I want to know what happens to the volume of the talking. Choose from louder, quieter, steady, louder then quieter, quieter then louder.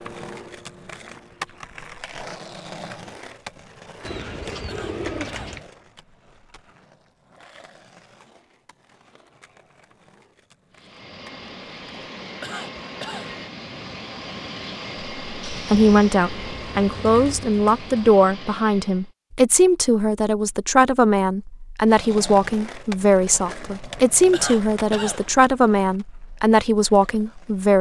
steady.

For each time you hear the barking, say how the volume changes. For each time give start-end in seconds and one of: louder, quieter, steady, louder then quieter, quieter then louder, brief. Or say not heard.
not heard.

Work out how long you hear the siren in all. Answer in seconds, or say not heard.
not heard.